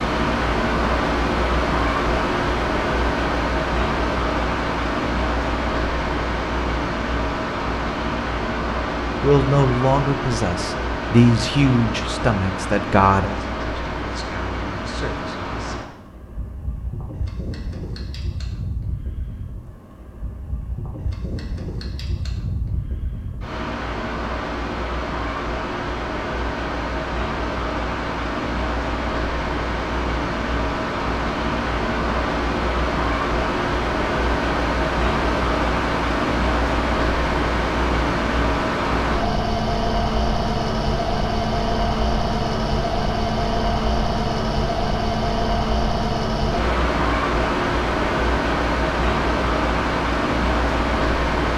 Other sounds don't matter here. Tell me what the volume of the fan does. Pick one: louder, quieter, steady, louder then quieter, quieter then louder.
quieter then louder.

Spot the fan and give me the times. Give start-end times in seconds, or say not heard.
0.0-51.5.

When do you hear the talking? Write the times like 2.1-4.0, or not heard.
9.2-15.8.